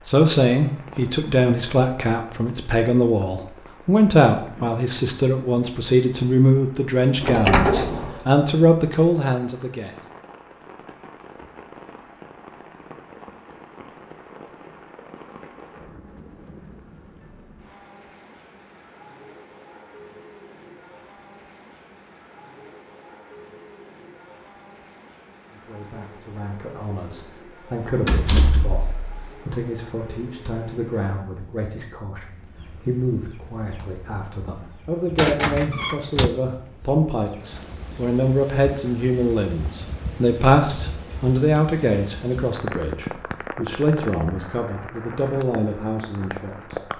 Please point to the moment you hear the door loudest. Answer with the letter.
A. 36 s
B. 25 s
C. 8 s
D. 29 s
C.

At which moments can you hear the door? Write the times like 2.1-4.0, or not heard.
7.2-8.2, 28.1-29.3, 35.1-36.3.